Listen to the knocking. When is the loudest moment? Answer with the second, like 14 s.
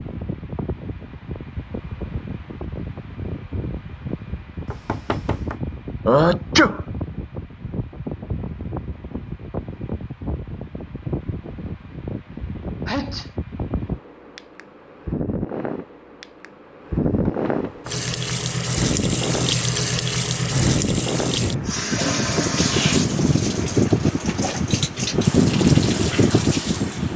5 s.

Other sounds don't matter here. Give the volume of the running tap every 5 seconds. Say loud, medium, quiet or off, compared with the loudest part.
off, off, off, loud, loud, medium.